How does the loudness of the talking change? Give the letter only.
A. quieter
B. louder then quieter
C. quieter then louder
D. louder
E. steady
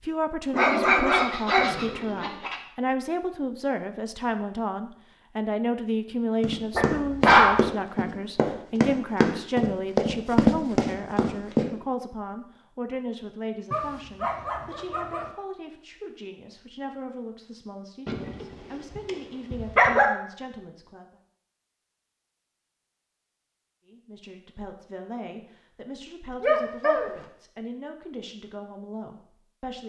A.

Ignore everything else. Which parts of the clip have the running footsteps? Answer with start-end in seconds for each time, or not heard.
6.4-11.7.